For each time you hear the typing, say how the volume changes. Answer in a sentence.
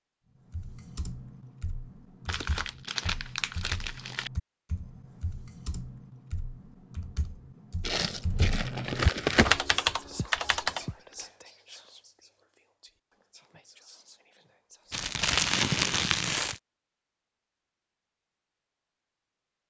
You can hear the typing from 0.5 to 10.9 s, getting louder.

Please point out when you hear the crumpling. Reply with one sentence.
The crumpling can be heard from 2.2 to 4.3 s, from 7.8 to 9.6 s and from 14.9 to 16.6 s.